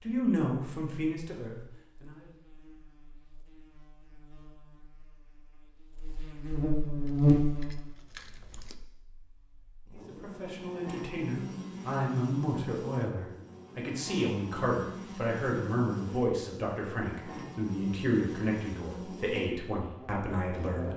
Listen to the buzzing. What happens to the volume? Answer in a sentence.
The loudness of the buzzing goes up, then down.